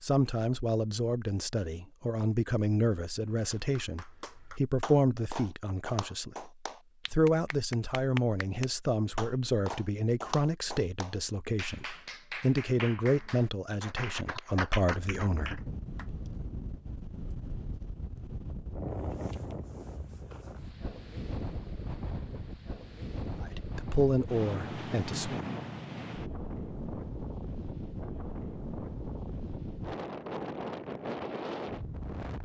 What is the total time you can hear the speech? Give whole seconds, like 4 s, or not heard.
17 s.